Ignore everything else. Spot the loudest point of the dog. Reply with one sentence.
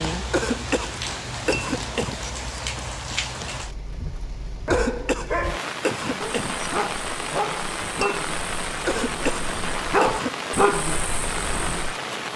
The volume of the dog peaks at 11 seconds.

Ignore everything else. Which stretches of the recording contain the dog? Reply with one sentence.
You can hear the dog from 4.7 to 11.9 s.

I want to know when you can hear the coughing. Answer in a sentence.
The coughing can be heard from 0.3 to 2.3 s, from 4.7 to 6.6 s and from 8.8 to 10.6 s.